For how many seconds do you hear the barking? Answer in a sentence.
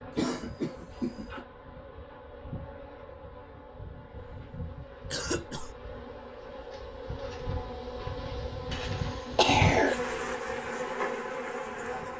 The barking can't be heard in this clip.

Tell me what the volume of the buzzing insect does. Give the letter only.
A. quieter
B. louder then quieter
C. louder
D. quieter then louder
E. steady
C.